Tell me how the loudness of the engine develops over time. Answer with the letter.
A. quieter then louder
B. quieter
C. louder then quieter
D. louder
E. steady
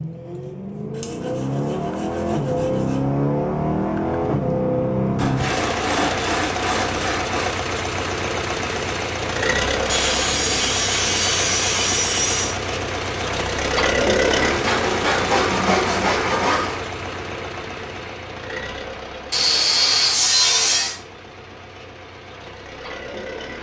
B.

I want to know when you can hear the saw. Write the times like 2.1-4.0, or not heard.
0.9-3.0, 5.2-7.5, 9.8-12.6, 14.3-16.8, 19.3-21.0.